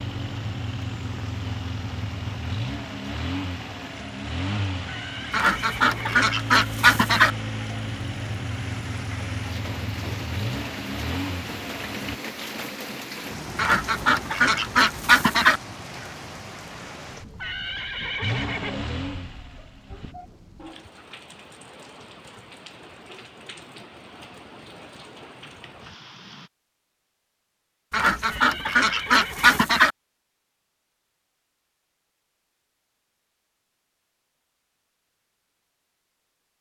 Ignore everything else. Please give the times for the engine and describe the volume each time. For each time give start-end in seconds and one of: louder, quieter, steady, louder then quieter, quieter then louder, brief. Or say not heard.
0.0-12.2 steady
18.2-20.1 brief.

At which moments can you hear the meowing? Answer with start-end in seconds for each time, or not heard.
not heard.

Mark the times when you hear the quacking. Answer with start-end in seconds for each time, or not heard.
5.3-7.3, 13.6-15.6, 27.9-29.9.